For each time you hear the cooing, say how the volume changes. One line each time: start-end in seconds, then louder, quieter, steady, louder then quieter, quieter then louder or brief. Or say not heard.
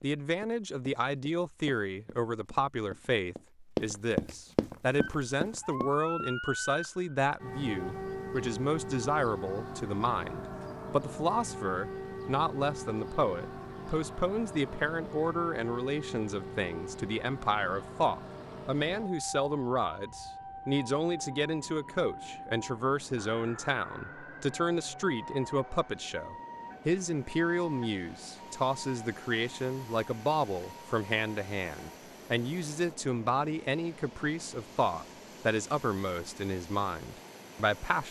not heard.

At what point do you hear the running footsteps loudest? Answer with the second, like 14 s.
4 s.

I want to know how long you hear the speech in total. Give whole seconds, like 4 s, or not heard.
38 s.